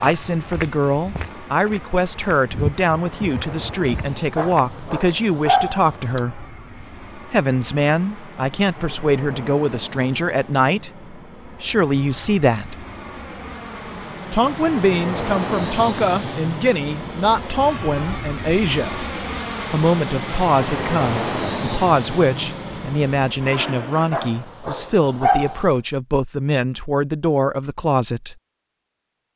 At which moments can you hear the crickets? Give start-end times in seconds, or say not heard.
not heard.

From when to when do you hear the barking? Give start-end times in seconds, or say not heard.
4.3-6.2, 24.1-25.6.